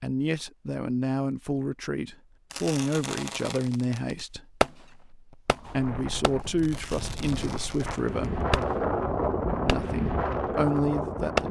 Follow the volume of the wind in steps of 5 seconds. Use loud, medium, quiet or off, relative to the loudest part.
off, loud, loud.